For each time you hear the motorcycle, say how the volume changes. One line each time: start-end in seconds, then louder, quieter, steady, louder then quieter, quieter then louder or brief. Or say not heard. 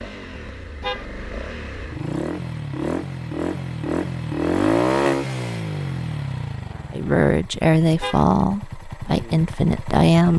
0.0-10.3 louder then quieter.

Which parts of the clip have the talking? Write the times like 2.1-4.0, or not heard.
6.9-10.3.